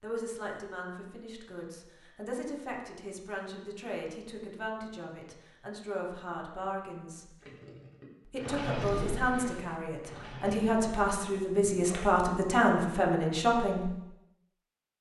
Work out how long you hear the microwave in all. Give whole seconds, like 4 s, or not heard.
not heard.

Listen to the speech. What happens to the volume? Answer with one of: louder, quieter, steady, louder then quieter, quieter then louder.
louder.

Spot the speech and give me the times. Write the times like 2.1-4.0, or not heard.
0.0-7.3, 8.2-13.9.